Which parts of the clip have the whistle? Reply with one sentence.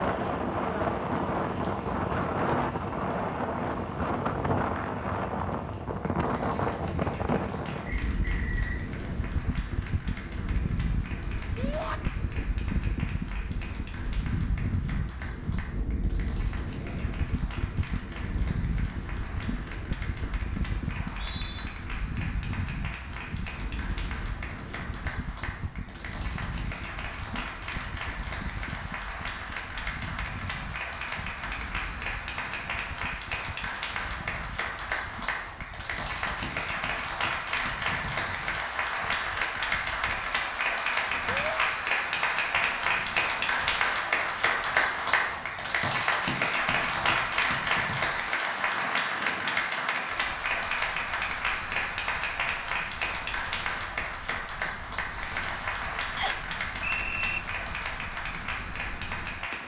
You can hear the whistle from 7.8 to 8.8 s, from 20.9 to 21.6 s and from 56.1 to 57.4 s.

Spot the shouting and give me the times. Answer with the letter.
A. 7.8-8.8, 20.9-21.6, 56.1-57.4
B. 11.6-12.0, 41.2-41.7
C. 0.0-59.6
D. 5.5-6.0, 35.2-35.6
B.